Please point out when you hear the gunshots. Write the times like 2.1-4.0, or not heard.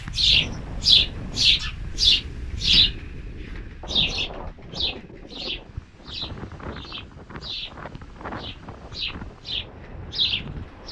not heard.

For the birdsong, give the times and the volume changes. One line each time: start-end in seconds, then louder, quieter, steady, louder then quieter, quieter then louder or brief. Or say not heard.
0.0-10.8 quieter then louder.